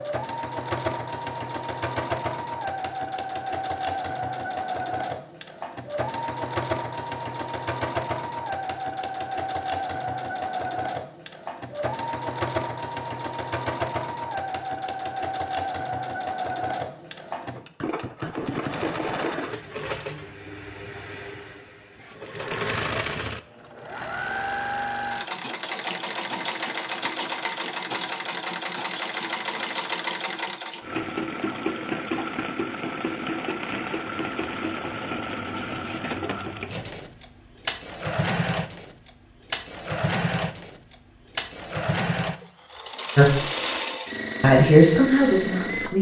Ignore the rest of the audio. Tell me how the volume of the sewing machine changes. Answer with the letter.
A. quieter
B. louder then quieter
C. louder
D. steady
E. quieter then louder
D.